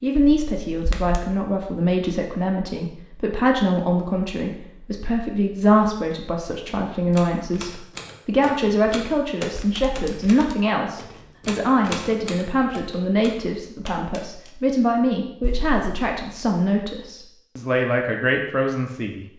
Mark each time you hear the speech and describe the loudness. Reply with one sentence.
The speech can be heard from 0.0 to 19.2 s, at a steady volume.